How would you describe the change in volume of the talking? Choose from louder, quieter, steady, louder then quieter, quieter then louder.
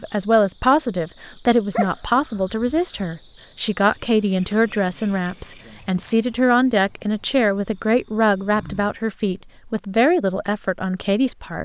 steady.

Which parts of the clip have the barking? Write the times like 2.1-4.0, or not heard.
1.7-3.0.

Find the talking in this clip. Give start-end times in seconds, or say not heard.
0.0-11.5.